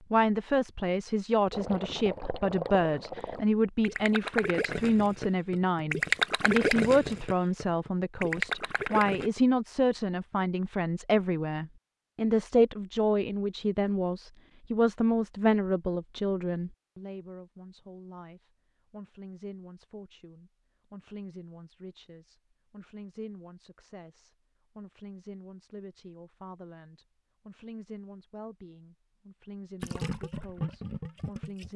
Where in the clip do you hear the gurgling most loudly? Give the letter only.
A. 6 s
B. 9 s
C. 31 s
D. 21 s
A.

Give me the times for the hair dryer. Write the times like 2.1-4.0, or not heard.
not heard.